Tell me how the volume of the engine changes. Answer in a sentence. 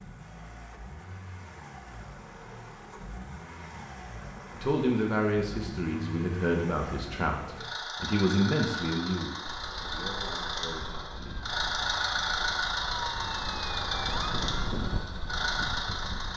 The volume of the engine goes up.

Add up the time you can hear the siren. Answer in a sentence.
The siren can be heard for 7 seconds in total.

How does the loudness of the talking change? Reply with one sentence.
The volume of the talking goes down.